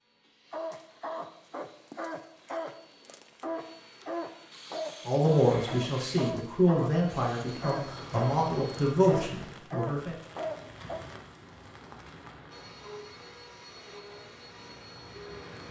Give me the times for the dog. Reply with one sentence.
The dog can be heard from 0.5 to 11.1 s.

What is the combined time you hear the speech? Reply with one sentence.
You can hear the speech for 5 seconds altogether.